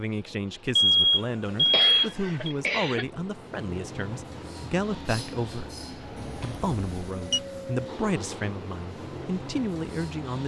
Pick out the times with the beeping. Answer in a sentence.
The beeping can be heard from 0.8 to 2.5 s and from 6.2 to 7.4 s.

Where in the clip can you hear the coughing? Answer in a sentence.
The coughing can be heard from 1.4 to 3.0 s.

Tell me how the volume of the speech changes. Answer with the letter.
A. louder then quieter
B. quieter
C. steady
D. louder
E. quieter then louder
C.